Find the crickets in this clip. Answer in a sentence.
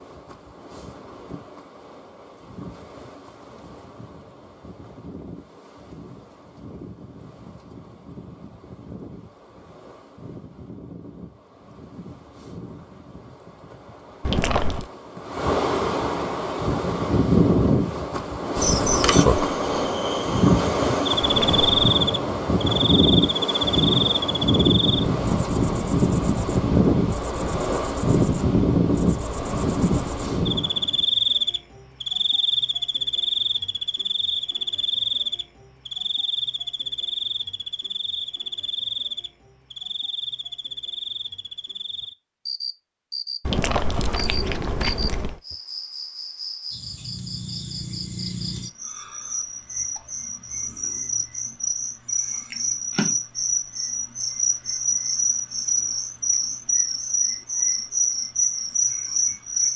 The crickets can be heard from 18.6 to 59.7 s.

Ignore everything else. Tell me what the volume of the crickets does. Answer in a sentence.
The volume of the crickets goes down, then up.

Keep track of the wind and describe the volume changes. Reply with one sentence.
The loudness of the wind goes up.